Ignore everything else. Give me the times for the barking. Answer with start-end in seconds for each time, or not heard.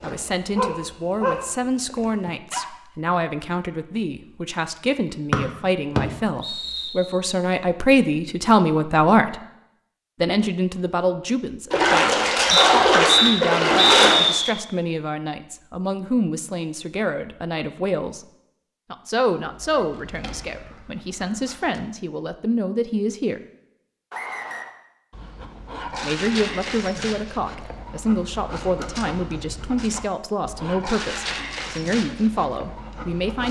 0.0-2.7, 19.4-21.9, 25.1-33.4.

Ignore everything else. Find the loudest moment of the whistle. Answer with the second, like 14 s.
13 s.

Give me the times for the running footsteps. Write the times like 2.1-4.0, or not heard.
not heard.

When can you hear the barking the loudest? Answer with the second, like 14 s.
1 s.